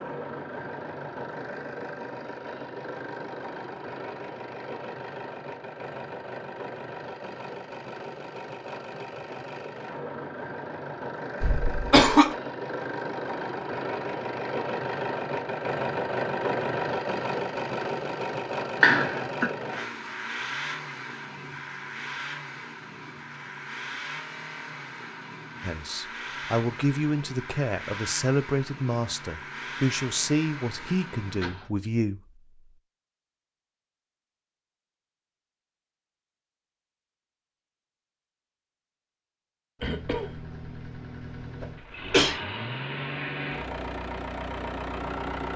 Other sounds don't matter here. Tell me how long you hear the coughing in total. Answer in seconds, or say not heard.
4 s.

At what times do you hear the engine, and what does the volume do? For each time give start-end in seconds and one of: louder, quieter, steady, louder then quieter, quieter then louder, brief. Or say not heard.
0.0-31.7 louder then quieter
39.9-45.5 louder.